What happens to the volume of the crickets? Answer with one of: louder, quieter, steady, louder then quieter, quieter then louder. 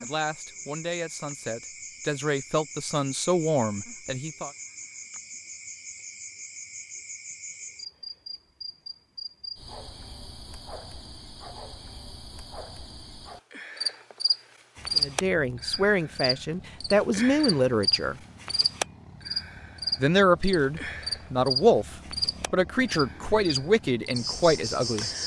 louder.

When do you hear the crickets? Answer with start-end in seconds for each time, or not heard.
0.0-25.2.